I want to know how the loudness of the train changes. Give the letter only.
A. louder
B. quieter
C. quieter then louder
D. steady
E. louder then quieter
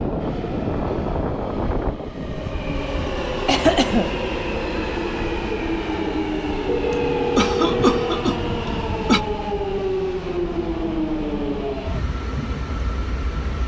D.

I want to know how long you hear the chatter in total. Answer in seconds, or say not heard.
not heard.